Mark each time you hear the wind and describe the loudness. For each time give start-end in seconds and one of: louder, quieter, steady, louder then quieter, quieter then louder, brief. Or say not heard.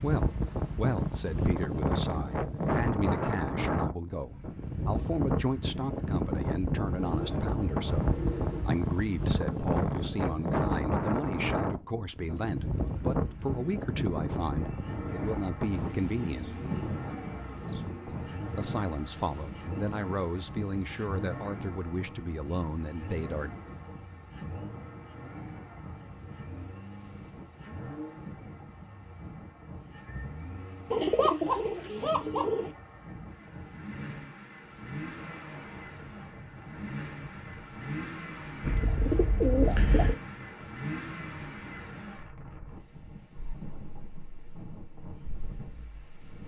0.0-46.4 quieter.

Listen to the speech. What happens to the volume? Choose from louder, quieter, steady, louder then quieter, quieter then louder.
steady.